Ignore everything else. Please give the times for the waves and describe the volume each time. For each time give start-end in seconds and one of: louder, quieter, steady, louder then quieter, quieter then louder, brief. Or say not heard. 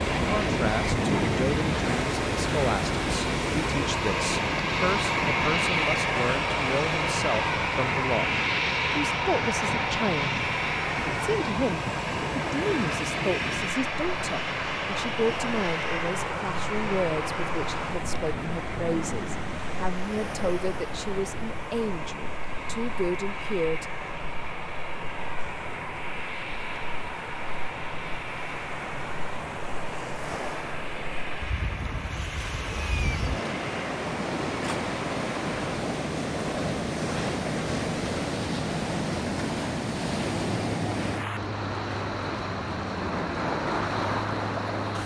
0.0-45.0 quieter then louder.